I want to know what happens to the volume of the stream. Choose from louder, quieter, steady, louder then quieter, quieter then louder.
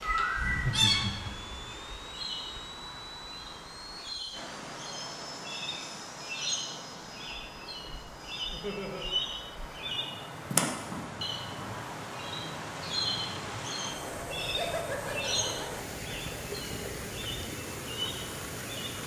louder.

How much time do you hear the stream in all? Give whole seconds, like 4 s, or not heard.
19 s.